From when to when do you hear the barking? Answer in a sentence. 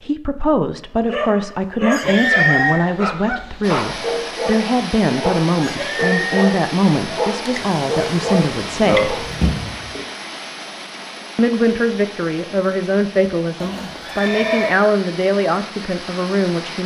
You can hear the barking from 1.1 to 9.3 s.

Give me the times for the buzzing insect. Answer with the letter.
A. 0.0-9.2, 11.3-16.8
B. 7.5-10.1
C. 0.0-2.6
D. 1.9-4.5
B.